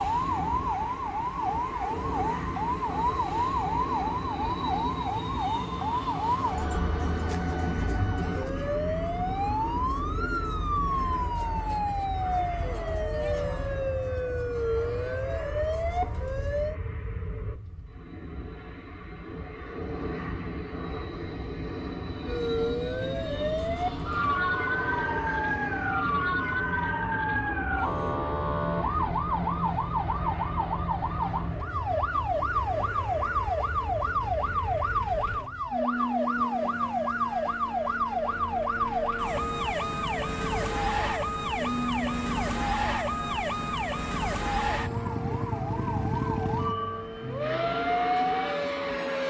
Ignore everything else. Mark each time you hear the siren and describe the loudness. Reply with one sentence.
The siren can be heard from 0.0 to 16.8 s, at a steady volume; and from 22.2 to 49.2 s, at a steady volume.